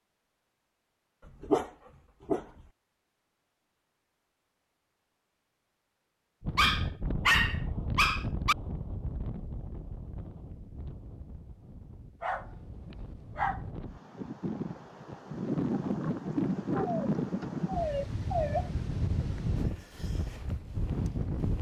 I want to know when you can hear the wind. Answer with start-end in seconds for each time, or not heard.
6.4-21.5.